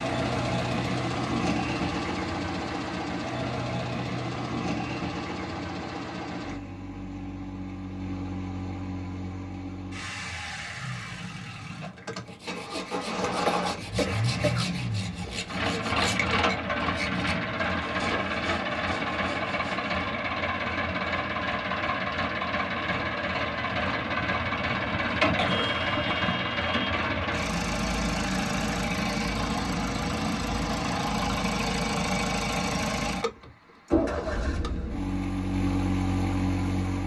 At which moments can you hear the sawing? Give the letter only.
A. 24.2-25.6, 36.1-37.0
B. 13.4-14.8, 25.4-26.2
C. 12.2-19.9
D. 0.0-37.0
C.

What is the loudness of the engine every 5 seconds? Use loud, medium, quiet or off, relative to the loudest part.
loud, medium, medium, loud, loud, loud, loud, loud.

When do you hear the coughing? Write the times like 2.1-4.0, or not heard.
13.4-14.8, 25.4-26.2.